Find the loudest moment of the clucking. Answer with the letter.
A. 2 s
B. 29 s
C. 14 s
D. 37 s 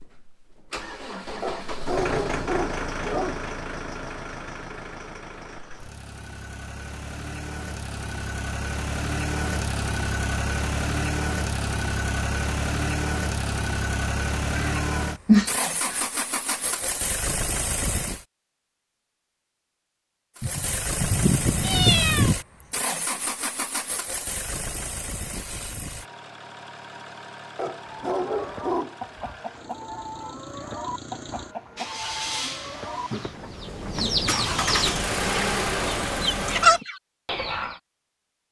D.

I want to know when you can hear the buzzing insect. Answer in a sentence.
The buzzing insect can't be heard in this clip.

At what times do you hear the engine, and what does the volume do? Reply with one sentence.
The engine can be heard from 0.0 to 18.2 s, getting quieter then louder; and from 20.4 to 36.8 s, getting quieter then louder.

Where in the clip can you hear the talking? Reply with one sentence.
You can't hear the talking here.